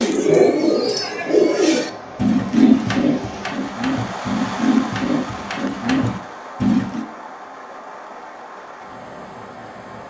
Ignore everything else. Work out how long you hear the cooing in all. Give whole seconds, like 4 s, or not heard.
7 s.